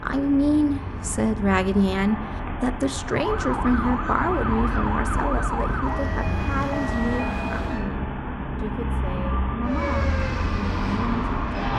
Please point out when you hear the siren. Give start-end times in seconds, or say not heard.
3.0-7.8, 9.7-11.7.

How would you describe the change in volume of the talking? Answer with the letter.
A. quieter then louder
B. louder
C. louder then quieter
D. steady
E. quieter
E.